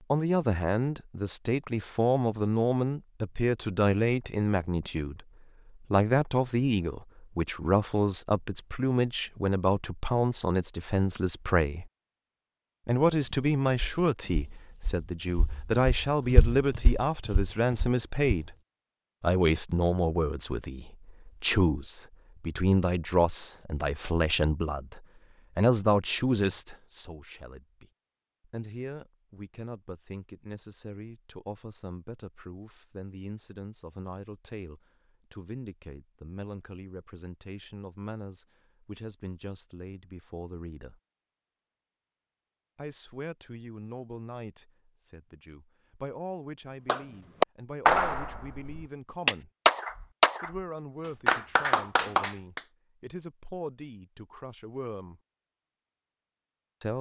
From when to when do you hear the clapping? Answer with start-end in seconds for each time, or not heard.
46.9-50.6, 51.2-52.6.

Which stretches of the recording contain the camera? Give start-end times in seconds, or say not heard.
not heard.